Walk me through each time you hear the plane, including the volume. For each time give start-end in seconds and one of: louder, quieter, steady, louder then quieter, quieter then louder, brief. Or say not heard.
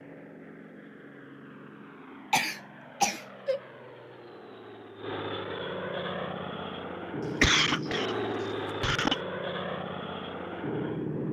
0.0-11.2 louder.